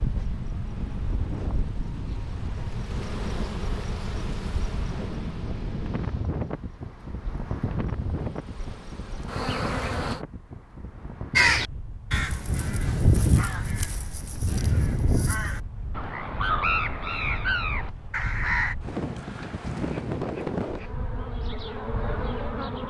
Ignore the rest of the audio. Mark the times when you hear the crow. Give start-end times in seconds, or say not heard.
11.3-18.8.